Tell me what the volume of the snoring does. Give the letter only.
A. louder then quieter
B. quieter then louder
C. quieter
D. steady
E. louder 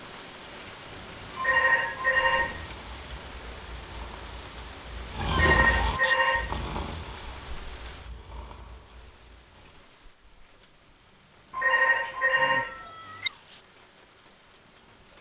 A.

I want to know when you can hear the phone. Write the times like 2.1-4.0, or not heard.
1.4-2.6, 5.3-6.6, 11.5-13.3.